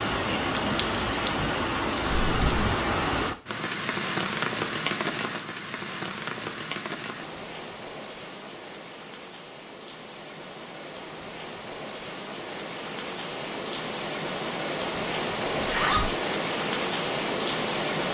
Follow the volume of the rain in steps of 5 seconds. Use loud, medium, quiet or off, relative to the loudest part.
loud, medium, medium, loud.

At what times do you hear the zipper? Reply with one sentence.
The zipper can be heard from 2.0 to 2.7 s and from 15.6 to 16.1 s.